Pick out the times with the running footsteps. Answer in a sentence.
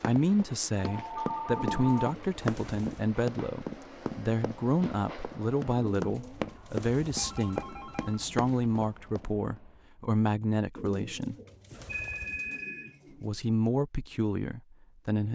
You can hear the running footsteps from 0.0 to 9.6 s.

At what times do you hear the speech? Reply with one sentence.
You can hear the speech from 0.0 to 11.3 s and from 13.2 to 15.2 s.